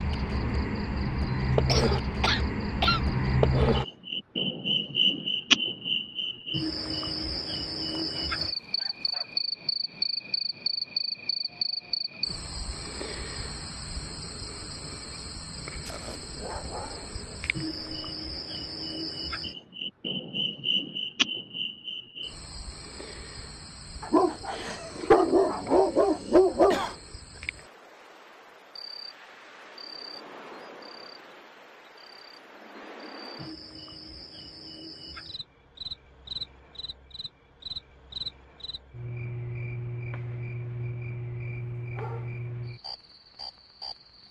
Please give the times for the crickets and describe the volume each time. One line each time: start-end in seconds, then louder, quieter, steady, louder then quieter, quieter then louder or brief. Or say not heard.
0.0-44.2 quieter then louder.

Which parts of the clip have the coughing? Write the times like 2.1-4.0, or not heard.
1.6-3.0, 26.7-27.4.